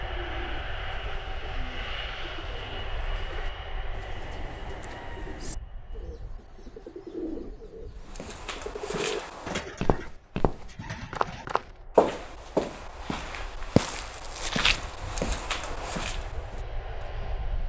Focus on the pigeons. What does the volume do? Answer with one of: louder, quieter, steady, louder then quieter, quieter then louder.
louder.